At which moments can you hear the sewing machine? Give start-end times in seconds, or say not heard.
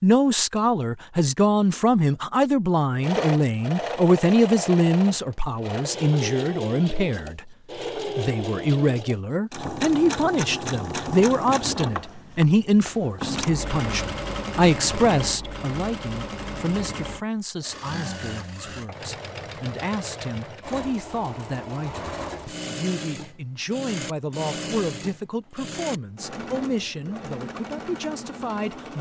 2.9-28.9.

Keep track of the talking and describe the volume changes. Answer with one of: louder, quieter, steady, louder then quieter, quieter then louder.
quieter.